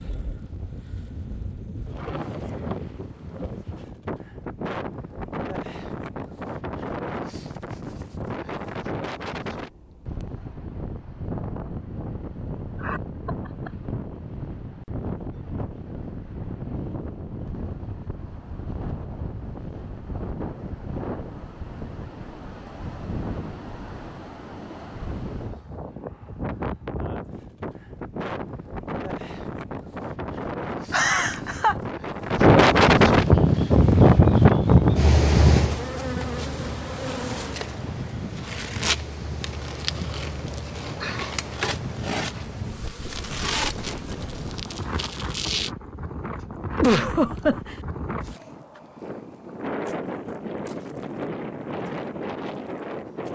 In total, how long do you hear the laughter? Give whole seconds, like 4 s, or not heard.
3 s.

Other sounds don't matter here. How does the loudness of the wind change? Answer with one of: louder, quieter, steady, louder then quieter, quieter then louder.
louder then quieter.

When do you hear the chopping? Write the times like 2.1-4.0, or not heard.
not heard.